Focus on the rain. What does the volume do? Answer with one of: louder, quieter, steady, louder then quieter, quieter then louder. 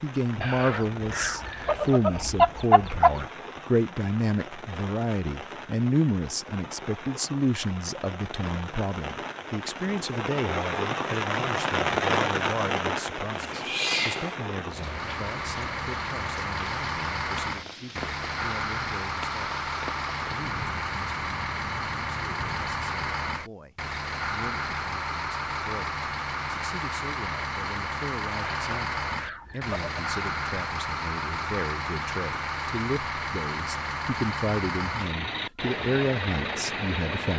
louder then quieter.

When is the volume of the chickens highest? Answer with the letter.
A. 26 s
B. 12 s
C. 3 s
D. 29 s
C.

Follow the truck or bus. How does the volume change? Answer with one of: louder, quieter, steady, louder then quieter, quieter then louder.
steady.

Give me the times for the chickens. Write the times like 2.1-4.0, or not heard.
0.4-3.1, 28.4-29.9.